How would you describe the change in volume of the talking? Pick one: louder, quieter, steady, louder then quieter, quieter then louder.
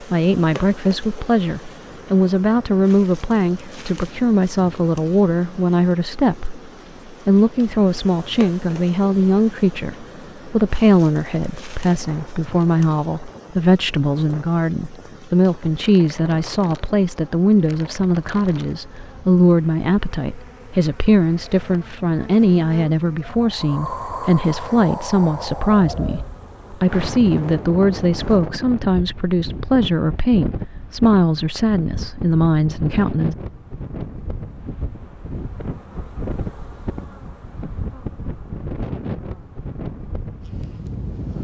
steady.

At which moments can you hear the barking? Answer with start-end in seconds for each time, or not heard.
not heard.